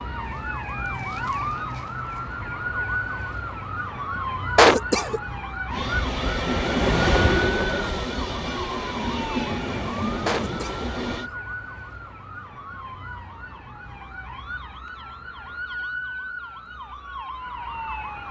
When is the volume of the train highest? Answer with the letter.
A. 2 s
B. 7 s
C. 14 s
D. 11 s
B.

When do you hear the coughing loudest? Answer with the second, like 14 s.
5 s.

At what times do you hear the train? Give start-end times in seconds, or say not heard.
5.7-11.3.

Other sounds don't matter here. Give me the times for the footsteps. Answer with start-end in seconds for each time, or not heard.
not heard.